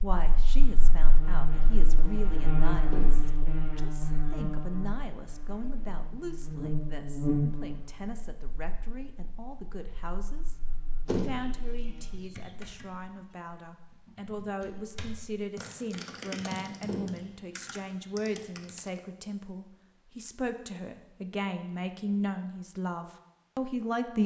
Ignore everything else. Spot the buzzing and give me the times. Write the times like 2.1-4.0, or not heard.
0.0-12.2.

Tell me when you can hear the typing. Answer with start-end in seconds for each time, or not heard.
11.9-19.0.